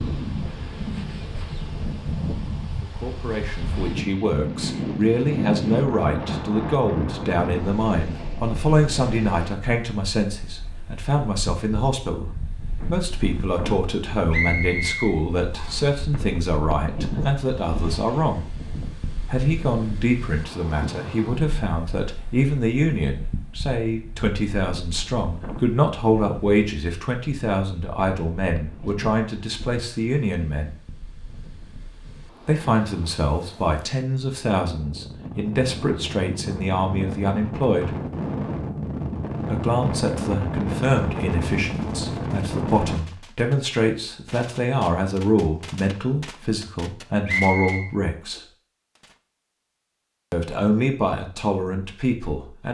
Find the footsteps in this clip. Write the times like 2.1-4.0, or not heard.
not heard.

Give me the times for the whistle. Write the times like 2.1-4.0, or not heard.
14.3-15.8, 47.2-47.9.